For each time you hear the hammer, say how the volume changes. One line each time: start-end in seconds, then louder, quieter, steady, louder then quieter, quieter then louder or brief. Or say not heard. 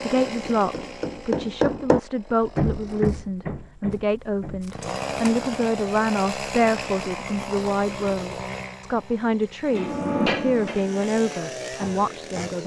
0.0-4.7 louder then quieter
9.7-12.6 brief.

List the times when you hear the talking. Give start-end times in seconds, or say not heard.
0.0-12.6.